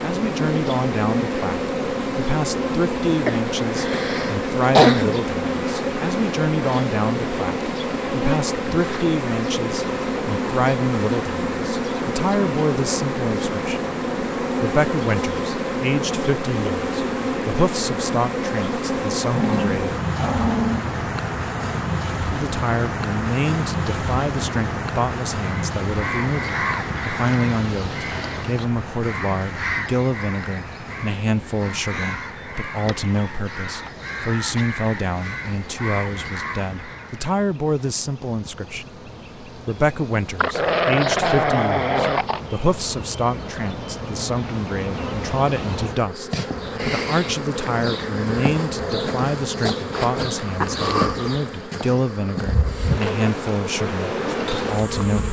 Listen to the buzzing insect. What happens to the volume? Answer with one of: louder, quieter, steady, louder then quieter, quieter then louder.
quieter then louder.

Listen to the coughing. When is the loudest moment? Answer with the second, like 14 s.
5 s.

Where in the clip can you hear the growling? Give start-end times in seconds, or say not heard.
19.3-20.9, 40.4-42.4.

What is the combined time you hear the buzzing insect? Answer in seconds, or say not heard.
55 s.